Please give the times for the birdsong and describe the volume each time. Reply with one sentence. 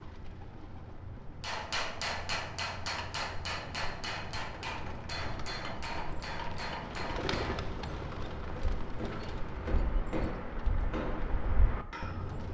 The birdsong can be heard from 0.0 to 12.4 s, getting louder.